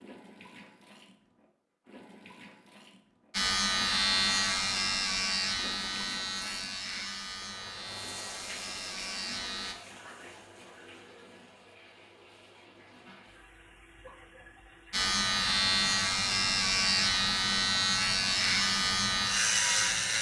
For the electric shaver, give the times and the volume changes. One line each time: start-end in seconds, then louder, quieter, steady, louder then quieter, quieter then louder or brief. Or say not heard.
3.3-9.8 quieter
14.9-20.1 steady.